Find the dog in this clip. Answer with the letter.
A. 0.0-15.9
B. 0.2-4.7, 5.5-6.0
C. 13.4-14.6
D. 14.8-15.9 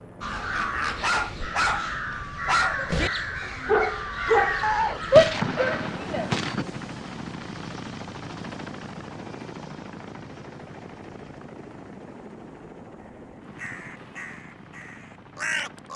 B.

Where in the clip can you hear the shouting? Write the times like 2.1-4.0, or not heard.
5.1-6.2.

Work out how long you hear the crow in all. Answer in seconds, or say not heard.
8 s.